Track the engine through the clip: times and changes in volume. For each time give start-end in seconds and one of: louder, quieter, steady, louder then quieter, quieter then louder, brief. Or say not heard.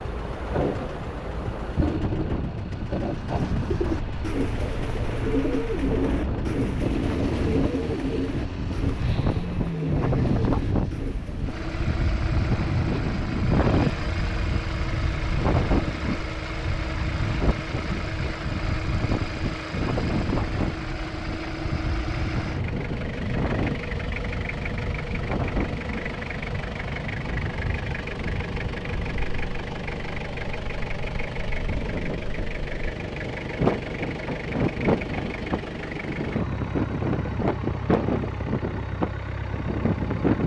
0.0-40.4 steady.